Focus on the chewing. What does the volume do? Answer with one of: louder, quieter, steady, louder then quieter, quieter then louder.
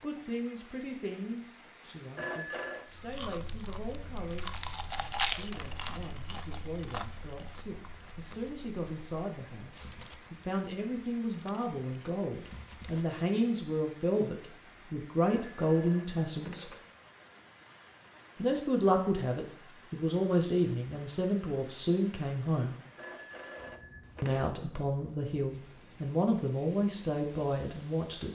louder then quieter.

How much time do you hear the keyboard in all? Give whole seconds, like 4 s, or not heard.
not heard.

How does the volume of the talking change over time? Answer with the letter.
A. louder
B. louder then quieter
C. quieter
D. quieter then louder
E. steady
A.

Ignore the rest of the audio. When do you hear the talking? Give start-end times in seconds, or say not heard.
0.0-16.7, 18.4-22.8, 24.2-28.3.